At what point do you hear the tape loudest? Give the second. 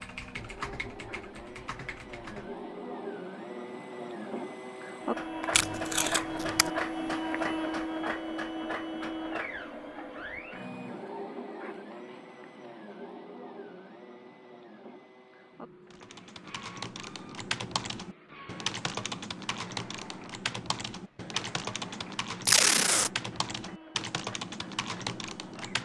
23 s.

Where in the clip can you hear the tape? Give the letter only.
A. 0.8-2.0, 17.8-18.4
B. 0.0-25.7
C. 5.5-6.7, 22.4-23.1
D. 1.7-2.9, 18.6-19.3
C.